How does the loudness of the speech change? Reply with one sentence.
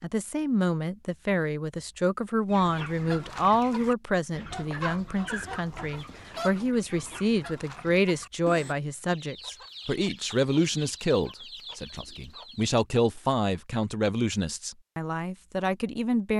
The volume of the speech stays about the same.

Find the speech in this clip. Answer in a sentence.
The speech can be heard from 0.0 to 16.3 s.